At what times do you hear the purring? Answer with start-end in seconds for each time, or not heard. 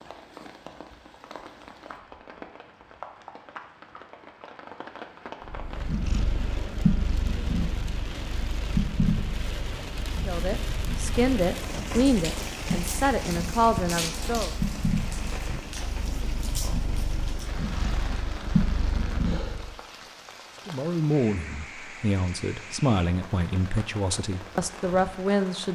5.5-19.7.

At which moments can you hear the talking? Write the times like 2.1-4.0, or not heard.
10.2-14.5, 20.6-25.6.